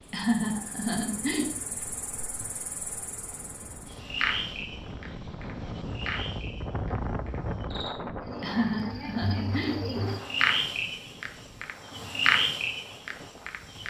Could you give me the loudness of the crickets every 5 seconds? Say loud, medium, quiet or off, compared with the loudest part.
medium, medium, loud.